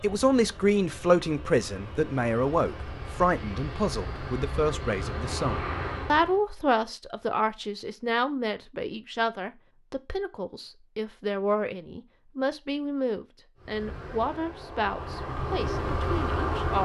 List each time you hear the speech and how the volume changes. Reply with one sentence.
You can hear the speech from 0.0 to 16.8 s, getting quieter.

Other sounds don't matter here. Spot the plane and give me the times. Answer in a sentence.
The plane can be heard from 0.0 to 6.4 s and from 13.6 to 16.8 s.